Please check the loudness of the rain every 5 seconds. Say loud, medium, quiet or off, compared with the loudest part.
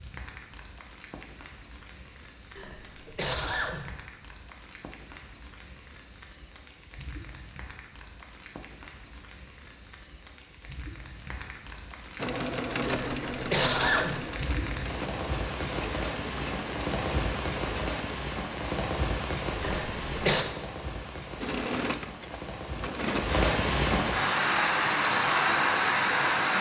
quiet, quiet, quiet, medium, medium, loud.